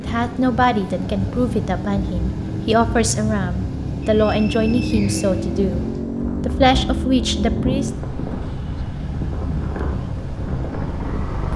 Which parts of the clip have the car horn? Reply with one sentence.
You can't hear the car horn here.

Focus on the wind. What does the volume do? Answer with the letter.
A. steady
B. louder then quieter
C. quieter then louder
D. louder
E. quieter
A.